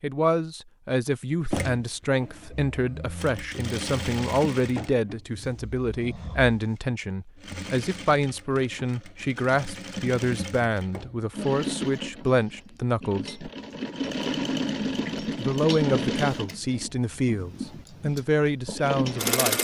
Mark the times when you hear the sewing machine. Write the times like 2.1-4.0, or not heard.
1.5-19.5.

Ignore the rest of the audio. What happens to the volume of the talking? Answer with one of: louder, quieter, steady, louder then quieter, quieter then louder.
steady.